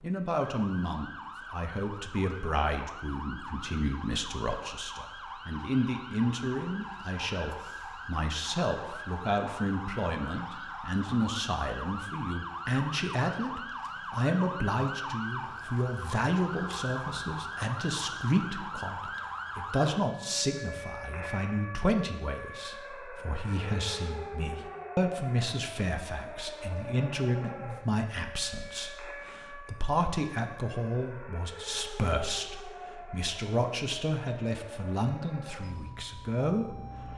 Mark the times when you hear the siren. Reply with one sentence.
You can hear the siren from 0.0 to 37.1 s.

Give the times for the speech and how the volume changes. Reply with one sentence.
The speech can be heard from 0.0 to 37.1 s, at a steady volume.